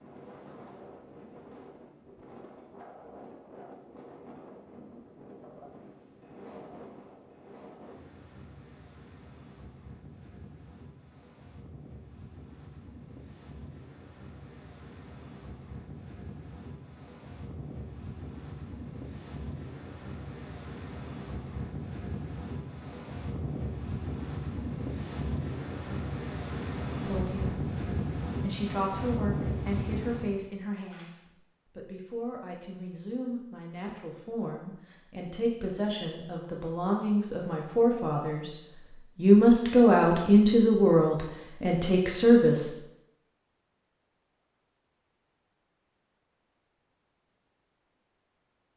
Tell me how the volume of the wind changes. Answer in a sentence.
The volume of the wind goes up.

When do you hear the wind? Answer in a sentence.
The wind can be heard from 0.0 to 30.4 s.